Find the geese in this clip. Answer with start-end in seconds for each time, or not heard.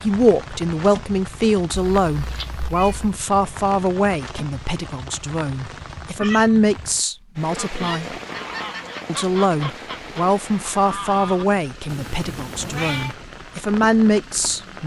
7.6-11.4.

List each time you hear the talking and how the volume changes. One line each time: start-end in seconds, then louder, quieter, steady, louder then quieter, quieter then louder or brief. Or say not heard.
0.0-8.2 quieter then louder
9.1-14.8 quieter then louder.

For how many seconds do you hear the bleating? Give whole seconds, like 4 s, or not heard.
not heard.